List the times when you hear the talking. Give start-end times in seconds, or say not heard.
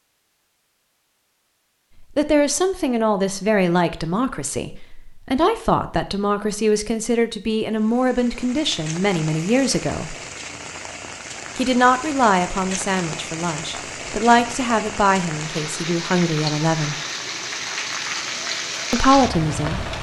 2.1-10.2, 11.6-16.9, 18.9-19.9.